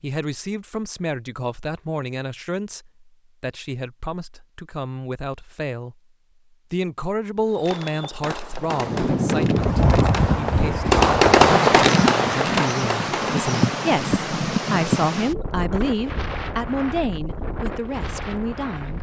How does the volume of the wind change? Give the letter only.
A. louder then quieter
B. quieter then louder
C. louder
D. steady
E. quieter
E.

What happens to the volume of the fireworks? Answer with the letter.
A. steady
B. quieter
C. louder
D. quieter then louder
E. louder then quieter
E.